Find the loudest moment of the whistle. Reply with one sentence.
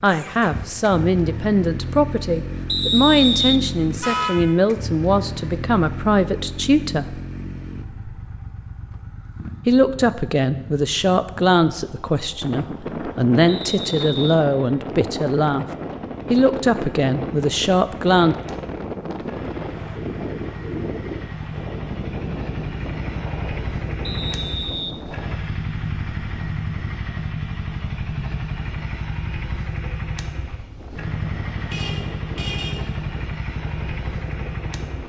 The loudest moment of the whistle is at 3 seconds.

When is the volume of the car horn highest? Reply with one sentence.
The volume of the car horn peaks at 4 seconds.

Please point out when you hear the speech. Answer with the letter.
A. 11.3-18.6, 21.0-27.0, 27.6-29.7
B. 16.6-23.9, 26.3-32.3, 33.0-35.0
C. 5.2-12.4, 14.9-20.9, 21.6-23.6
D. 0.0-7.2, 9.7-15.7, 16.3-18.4
D.